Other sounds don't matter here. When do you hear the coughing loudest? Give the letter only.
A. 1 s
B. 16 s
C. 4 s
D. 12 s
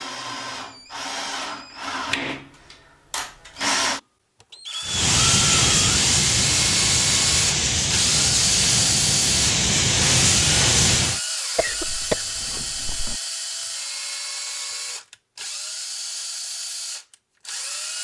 D.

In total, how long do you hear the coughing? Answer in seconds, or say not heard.
2 s.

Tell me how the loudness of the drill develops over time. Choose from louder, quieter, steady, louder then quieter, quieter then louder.
louder then quieter.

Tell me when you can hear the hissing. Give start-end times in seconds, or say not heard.
4.8-11.2.